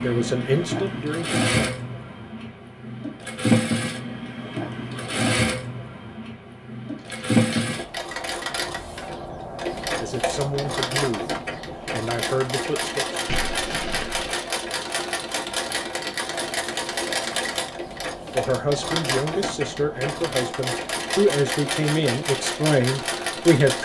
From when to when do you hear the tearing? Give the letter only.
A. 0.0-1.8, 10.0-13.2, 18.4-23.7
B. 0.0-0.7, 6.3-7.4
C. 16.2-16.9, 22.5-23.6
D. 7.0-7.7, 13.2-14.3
D.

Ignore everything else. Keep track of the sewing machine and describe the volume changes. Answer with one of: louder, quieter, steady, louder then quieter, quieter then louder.
steady.